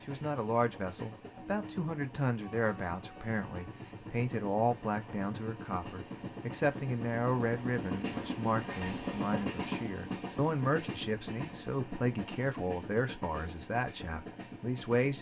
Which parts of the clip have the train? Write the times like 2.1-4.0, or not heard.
0.0-15.1.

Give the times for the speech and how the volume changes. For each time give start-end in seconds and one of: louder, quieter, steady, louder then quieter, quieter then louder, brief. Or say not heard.
0.1-15.1 steady.